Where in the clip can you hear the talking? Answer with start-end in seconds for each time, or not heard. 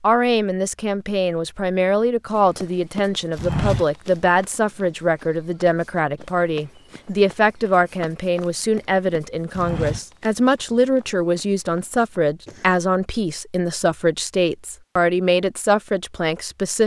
0.0-16.8.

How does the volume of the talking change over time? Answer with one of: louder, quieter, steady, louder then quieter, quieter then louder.
steady.